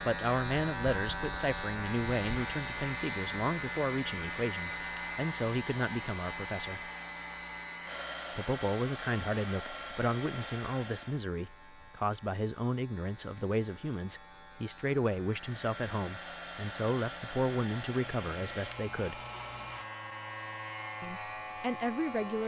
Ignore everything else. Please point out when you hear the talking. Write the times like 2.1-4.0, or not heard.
0.1-6.9, 8.3-19.2, 21.0-22.4.